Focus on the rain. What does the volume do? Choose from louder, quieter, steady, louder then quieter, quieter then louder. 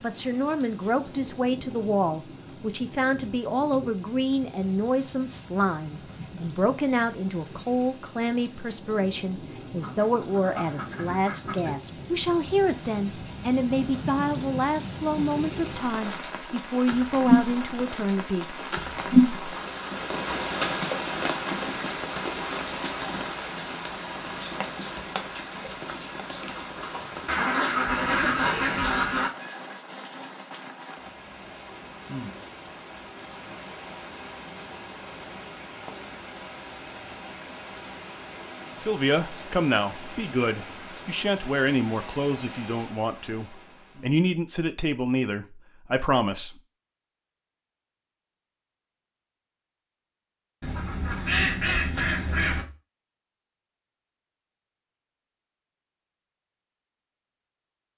louder then quieter.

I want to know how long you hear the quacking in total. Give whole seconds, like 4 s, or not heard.
6 s.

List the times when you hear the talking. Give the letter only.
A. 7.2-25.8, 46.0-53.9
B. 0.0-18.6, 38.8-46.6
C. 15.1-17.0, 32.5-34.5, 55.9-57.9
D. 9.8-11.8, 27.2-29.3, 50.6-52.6
B.